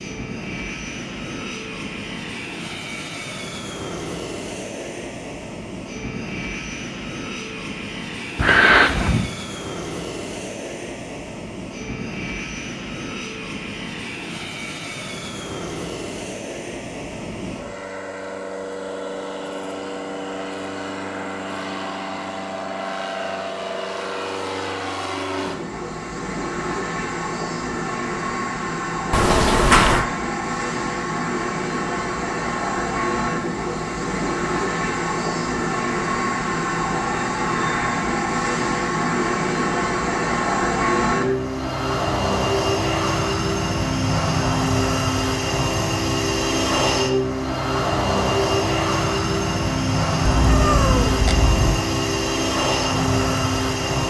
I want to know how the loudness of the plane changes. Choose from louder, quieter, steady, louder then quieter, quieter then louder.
louder.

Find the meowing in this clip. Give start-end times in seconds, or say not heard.
8.3-9.3, 29.1-30.1, 50.2-51.8.